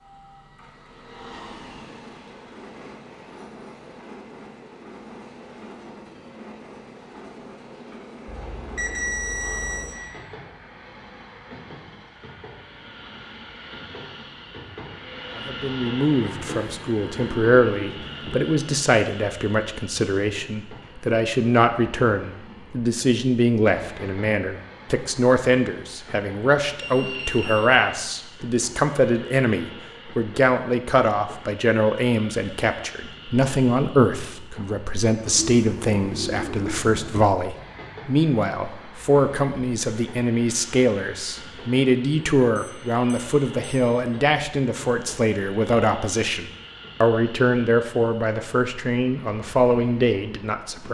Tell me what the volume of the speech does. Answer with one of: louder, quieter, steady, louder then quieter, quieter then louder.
steady.